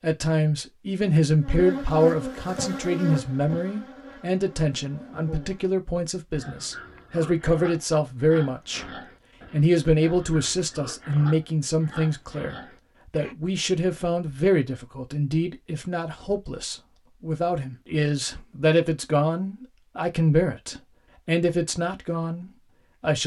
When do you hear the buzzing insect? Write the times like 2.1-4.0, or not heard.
1.4-5.8.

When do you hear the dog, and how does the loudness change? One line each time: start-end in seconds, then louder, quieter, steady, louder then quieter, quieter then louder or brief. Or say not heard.
not heard.